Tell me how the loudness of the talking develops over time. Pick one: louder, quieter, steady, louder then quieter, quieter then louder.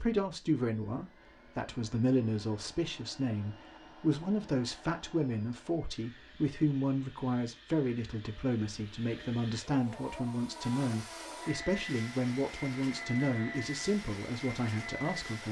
steady.